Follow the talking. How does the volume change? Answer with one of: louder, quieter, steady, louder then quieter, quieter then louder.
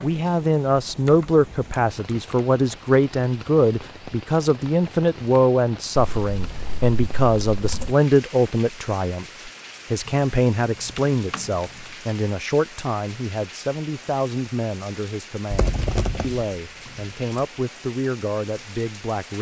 quieter.